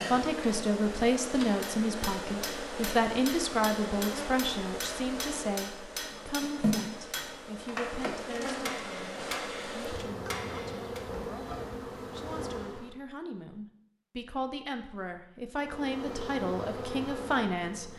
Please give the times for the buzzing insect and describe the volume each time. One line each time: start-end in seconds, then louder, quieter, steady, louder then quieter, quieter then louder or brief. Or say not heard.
0.0-12.9 steady
15.6-17.9 brief.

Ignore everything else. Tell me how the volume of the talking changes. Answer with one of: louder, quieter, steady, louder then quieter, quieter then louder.
quieter then louder.